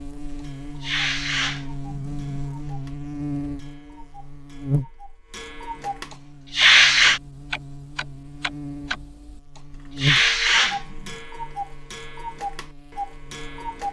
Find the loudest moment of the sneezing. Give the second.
7 s.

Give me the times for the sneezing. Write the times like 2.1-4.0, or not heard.
0.8-2.2, 6.5-7.2, 9.9-11.2.